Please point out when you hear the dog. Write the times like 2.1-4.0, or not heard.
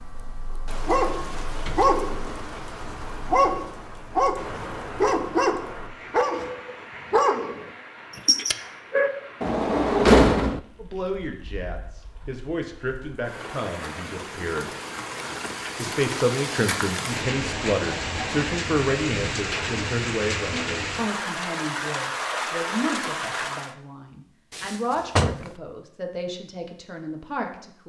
0.8-9.1.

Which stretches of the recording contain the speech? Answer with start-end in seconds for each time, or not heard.
10.8-14.8, 15.8-27.8.